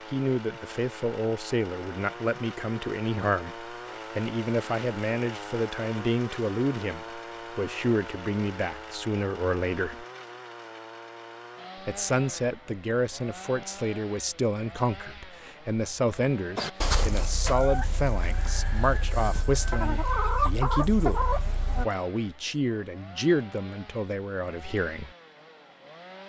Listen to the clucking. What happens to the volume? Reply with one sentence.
The loudness of the clucking goes down, then up.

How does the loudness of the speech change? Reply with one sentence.
The loudness of the speech stays about the same.